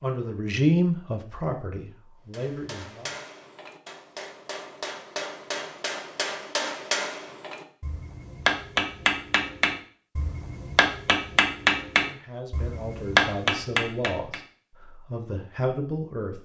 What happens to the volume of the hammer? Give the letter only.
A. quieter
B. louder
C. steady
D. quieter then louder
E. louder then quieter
B.